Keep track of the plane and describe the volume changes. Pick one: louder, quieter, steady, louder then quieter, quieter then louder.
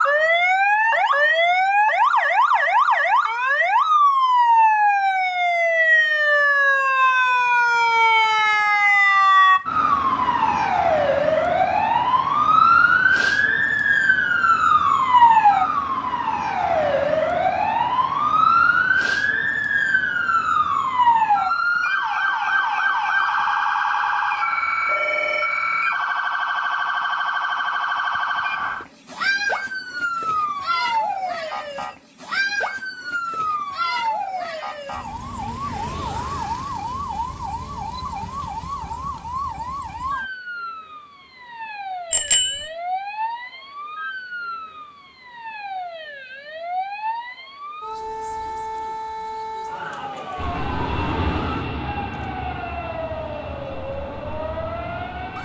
quieter.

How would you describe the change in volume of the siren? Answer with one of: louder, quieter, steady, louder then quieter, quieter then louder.
quieter.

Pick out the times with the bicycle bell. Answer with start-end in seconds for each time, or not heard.
42.1-42.7.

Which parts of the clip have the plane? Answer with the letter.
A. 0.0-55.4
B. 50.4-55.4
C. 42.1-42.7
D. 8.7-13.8
B.